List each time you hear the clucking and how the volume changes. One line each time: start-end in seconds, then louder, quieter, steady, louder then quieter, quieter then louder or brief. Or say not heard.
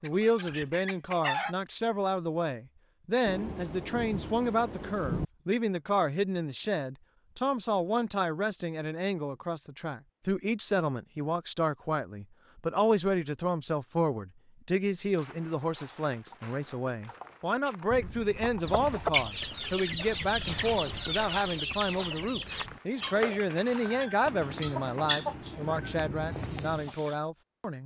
0.0-1.6 brief
18.6-27.1 quieter.